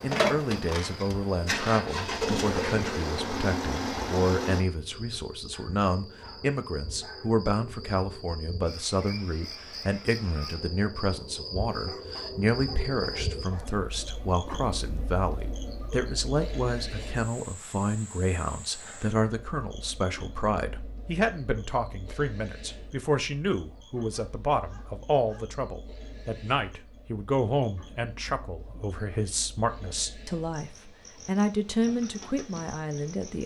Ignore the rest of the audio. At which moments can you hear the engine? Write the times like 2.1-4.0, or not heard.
0.0-4.7.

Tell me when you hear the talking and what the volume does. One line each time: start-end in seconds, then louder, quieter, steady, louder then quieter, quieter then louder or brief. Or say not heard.
0.0-33.4 steady.